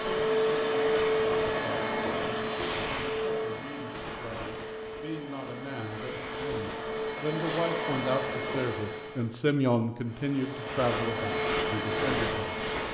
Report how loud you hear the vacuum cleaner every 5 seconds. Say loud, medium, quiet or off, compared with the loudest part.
loud, medium, loud.